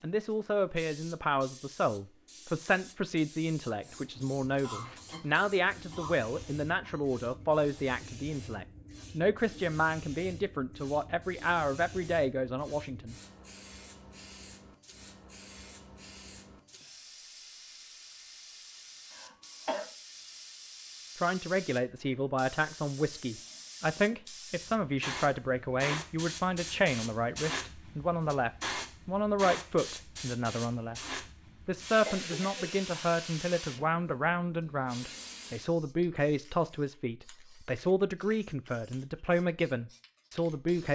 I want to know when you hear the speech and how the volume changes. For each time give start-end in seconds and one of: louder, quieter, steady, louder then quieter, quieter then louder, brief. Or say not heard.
0.0-13.2 steady
21.1-40.9 steady.